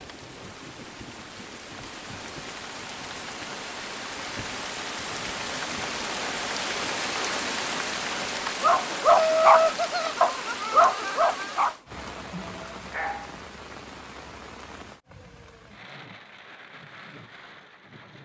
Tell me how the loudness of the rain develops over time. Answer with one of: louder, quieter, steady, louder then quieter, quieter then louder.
louder then quieter.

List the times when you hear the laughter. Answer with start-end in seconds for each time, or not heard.
9.1-11.6.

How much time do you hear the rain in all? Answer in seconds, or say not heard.
18 s.